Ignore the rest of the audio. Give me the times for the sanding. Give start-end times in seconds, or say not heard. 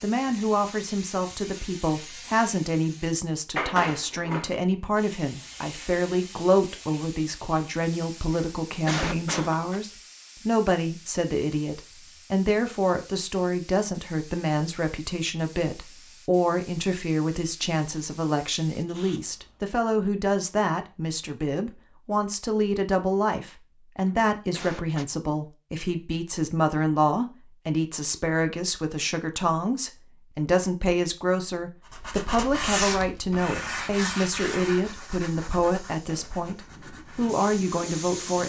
31.9-38.4.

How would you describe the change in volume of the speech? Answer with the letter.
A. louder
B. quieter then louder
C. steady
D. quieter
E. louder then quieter
C.